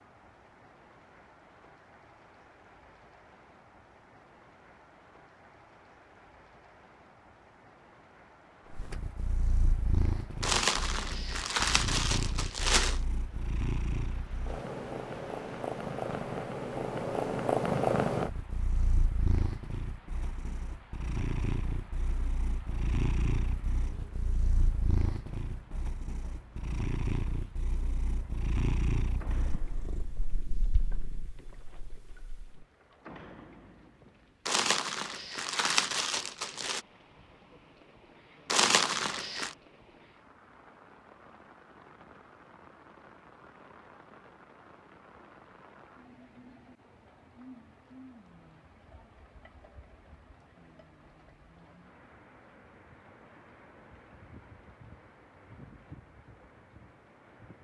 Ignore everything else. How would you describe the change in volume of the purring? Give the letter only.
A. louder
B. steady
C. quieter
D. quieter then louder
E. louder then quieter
E.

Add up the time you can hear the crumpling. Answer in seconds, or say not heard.
6 s.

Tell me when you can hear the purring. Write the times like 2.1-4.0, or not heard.
8.7-32.6.